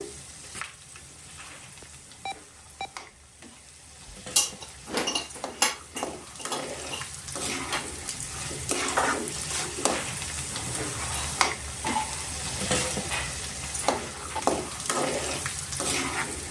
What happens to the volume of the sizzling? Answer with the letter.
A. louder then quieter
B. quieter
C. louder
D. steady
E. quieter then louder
C.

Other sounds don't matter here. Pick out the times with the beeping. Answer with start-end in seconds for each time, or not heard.
1.8-3.0.